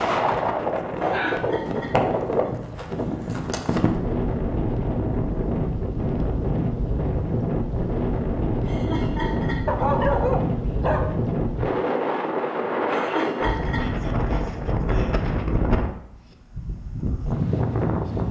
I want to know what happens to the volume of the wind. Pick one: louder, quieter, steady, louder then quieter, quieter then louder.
steady.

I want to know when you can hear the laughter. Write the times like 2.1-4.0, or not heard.
0.9-2.5, 8.7-10.2, 12.9-14.4.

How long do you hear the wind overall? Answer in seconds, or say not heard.
18 s.